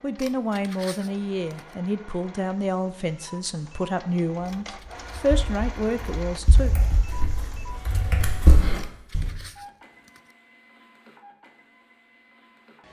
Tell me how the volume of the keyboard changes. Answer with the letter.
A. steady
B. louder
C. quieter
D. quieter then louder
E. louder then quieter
B.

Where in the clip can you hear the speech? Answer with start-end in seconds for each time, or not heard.
0.0-6.7.